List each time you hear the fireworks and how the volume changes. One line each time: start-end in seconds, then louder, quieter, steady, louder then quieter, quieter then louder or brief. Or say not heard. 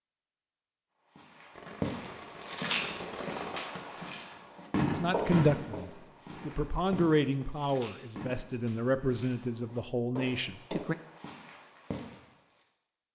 1.6-8.3 louder then quieter.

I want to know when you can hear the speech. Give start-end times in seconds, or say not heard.
4.9-10.9.